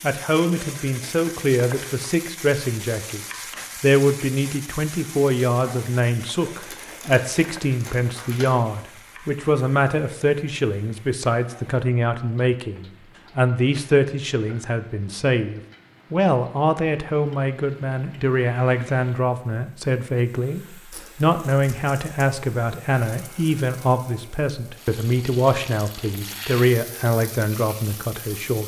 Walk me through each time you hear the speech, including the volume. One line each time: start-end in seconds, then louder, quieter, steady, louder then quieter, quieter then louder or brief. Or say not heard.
0.0-28.6 steady.